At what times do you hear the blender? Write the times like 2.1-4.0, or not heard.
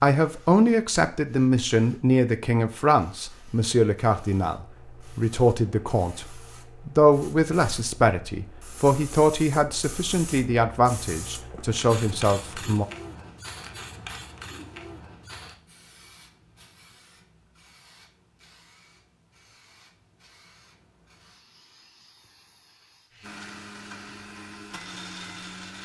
23.2-25.8.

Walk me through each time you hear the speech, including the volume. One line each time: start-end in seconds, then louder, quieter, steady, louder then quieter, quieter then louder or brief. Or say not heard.
0.0-12.8 steady.